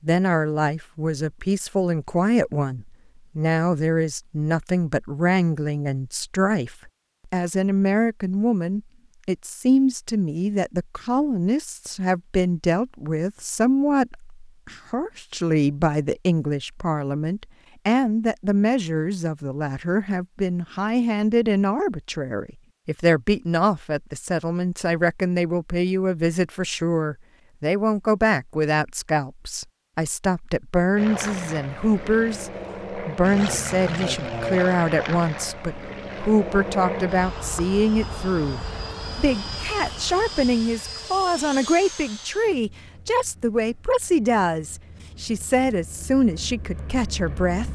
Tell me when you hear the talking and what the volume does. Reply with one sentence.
The talking can be heard from 0.0 to 47.7 s, at a steady volume.